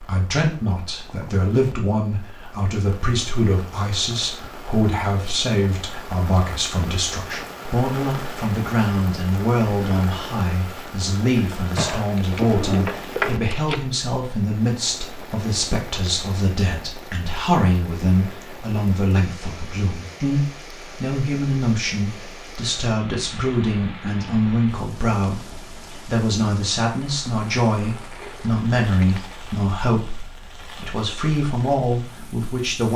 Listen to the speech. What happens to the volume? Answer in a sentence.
The loudness of the speech stays about the same.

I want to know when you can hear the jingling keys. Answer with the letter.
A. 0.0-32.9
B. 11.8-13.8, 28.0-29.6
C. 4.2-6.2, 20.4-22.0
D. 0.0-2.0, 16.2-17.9
B.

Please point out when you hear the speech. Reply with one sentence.
The speech can be heard from 0.0 to 32.9 s.